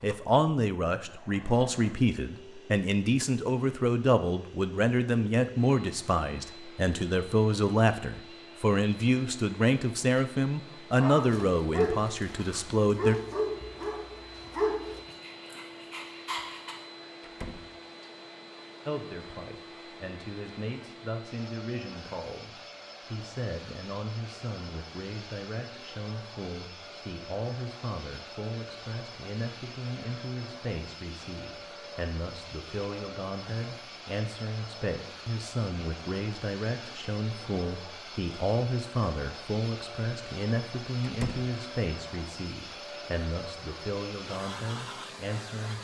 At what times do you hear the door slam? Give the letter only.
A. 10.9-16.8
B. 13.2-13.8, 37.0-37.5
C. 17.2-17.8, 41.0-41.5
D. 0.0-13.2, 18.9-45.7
C.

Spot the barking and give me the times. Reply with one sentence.
You can hear the barking from 10.9 to 16.8 s.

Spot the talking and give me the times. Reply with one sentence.
The talking can be heard from 0.0 to 13.2 s and from 18.9 to 45.7 s.